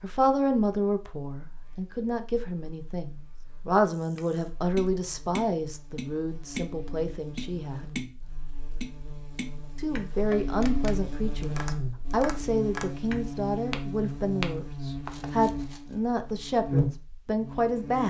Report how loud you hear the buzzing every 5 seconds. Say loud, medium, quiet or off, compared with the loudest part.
quiet, quiet, loud, loud.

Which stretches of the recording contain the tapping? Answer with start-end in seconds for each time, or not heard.
4.2-15.4.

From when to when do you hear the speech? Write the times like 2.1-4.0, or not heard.
0.0-7.8, 9.8-18.0.